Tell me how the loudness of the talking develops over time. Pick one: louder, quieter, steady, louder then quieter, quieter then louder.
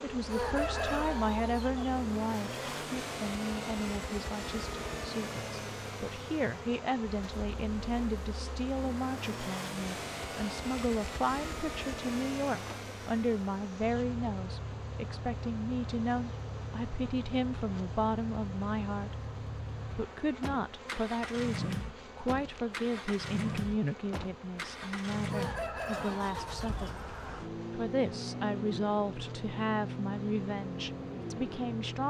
steady.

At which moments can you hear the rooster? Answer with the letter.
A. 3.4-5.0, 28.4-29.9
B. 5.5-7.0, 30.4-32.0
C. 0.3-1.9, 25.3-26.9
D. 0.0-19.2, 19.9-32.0
C.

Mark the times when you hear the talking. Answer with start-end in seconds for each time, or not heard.
0.0-19.2, 19.9-32.0.